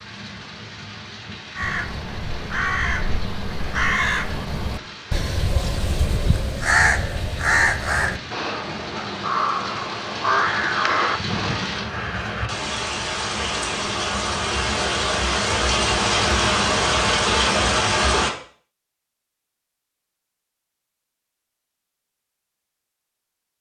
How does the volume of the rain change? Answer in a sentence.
The loudness of the rain goes up.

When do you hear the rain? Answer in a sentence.
You can hear the rain from 0.0 to 18.3 s.